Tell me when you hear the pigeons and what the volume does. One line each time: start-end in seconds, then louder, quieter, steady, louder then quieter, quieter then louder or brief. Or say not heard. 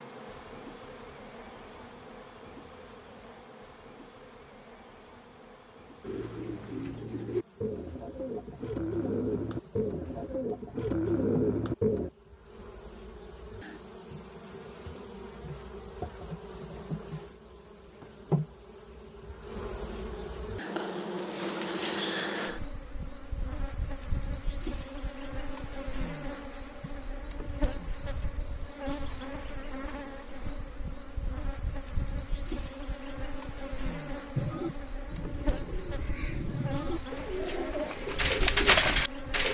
6.0-12.1 louder
34.4-39.5 louder.